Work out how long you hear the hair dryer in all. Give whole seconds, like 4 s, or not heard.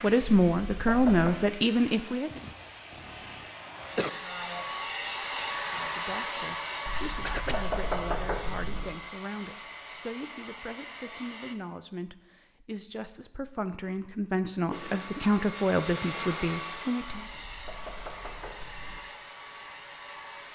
17 s.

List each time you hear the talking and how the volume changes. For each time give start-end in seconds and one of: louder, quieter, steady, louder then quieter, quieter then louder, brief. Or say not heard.
0.0-2.3 brief
5.7-17.2 louder.